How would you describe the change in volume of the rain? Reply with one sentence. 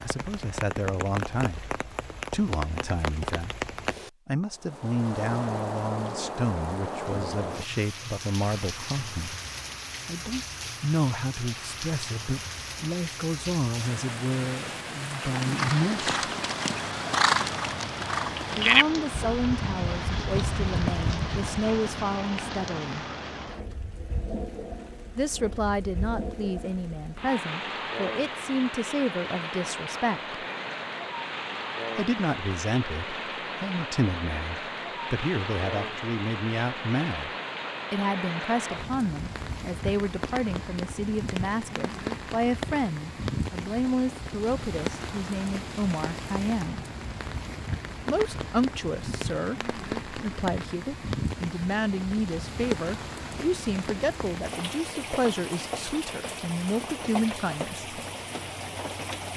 The loudness of the rain stays about the same.